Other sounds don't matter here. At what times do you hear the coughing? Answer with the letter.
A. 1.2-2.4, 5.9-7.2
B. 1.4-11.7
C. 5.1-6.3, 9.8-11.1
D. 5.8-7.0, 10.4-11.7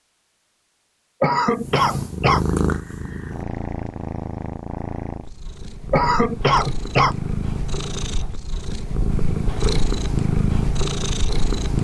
A.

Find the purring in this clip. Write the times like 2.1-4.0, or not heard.
1.4-11.7.